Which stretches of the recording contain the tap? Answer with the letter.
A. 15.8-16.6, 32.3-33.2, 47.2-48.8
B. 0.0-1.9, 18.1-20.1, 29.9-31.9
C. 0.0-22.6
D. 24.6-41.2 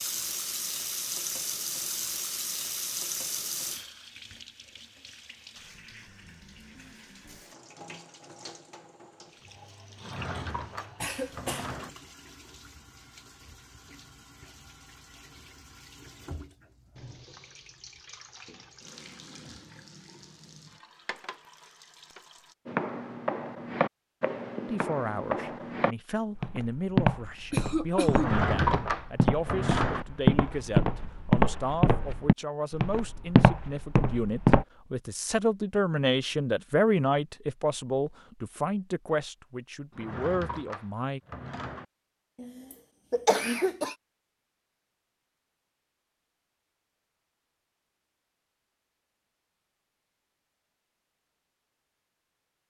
C.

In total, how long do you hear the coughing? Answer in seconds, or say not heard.
3 s.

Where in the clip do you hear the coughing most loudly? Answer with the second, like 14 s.
43 s.